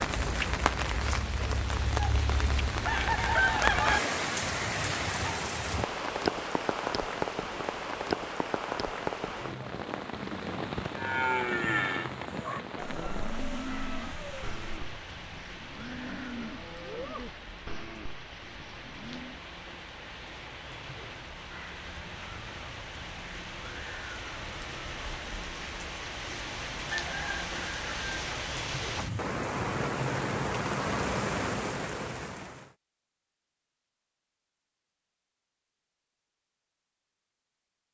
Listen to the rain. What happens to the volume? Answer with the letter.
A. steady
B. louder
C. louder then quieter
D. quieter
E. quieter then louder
E.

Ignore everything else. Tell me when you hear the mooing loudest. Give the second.
11 s.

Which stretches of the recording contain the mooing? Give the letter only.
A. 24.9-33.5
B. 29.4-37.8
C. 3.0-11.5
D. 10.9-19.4
D.